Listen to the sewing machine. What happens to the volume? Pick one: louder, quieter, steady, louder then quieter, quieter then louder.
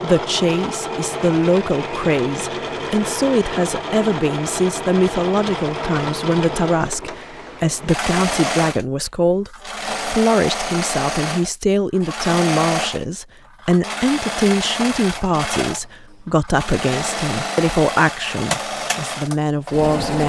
steady.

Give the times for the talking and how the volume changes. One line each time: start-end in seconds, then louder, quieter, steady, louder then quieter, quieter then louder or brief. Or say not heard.
0.0-20.2 steady.